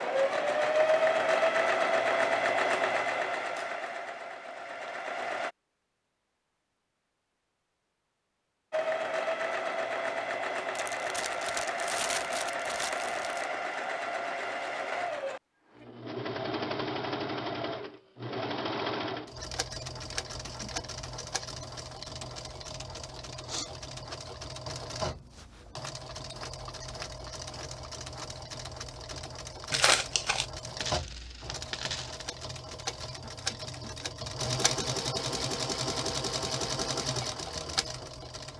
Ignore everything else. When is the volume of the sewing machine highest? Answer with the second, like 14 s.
1 s.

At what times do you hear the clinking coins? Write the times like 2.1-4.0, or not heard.
30.8-32.2.